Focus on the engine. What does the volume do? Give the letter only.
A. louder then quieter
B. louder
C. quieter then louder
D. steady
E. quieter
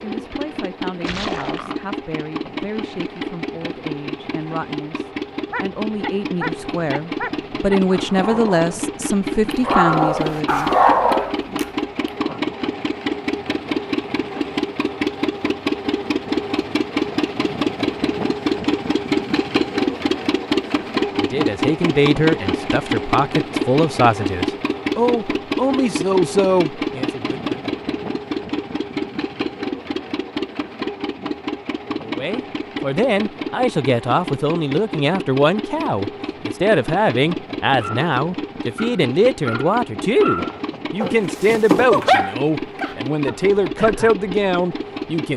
A.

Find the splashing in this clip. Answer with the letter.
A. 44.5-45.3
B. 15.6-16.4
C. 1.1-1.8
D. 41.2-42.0
C.